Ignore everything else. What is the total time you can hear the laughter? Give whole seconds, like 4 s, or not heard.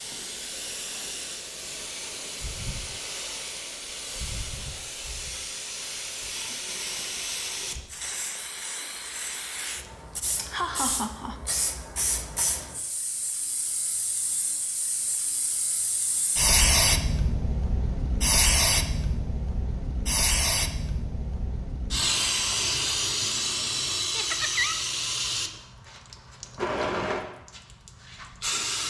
2 s.